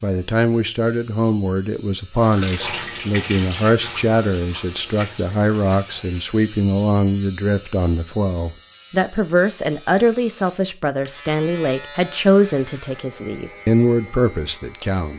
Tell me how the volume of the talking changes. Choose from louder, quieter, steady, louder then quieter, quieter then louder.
steady.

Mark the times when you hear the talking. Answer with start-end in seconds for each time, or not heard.
0.0-15.1.